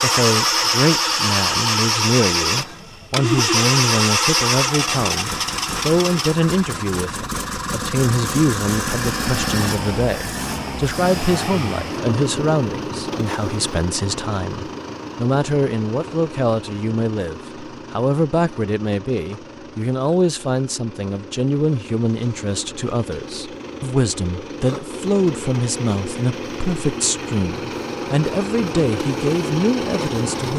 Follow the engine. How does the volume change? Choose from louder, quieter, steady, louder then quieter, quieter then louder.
quieter then louder.